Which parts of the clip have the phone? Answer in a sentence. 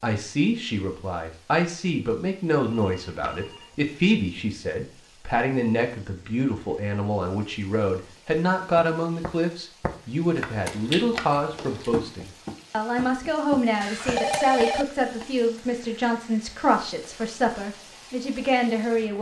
The phone can be heard from 2.8 to 3.7 s and from 13.8 to 14.8 s.